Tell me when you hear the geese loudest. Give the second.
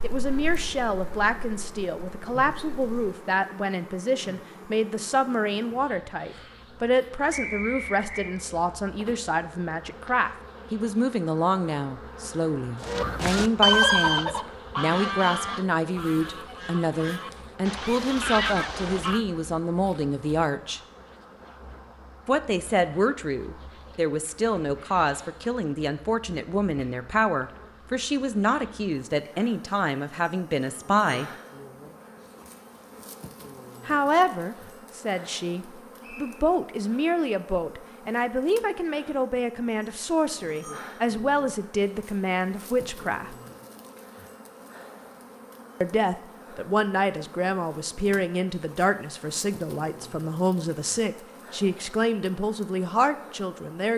14 s.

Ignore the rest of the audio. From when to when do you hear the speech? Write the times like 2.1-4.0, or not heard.
0.0-20.8, 22.2-31.3, 33.9-43.4, 45.8-53.9.